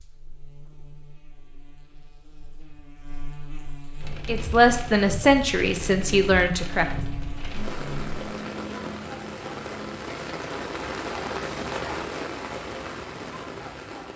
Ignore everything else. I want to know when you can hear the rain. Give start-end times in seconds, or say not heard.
4.0-14.1.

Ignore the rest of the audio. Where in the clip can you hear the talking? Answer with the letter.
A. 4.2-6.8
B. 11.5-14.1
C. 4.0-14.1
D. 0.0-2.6
A.